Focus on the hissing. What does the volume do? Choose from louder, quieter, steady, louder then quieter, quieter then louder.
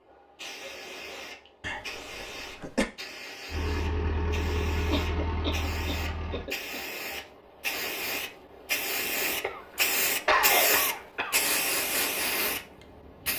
louder.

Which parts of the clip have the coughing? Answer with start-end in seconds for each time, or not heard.
1.6-2.9, 4.9-6.8, 9.4-11.4.